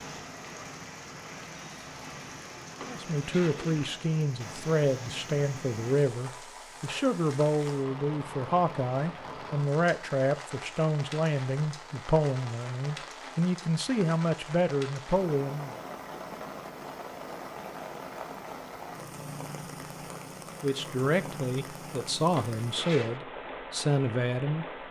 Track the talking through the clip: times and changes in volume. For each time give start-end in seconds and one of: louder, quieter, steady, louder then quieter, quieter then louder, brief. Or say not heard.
2.9-15.8 steady
20.6-24.6 steady.